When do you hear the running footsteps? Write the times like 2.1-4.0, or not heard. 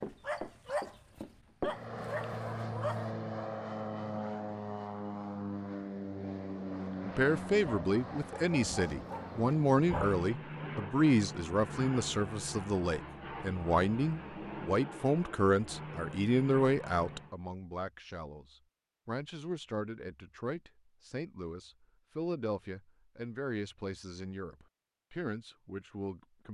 0.0-1.8.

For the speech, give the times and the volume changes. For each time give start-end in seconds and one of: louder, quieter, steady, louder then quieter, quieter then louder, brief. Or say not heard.
7.0-26.4 quieter.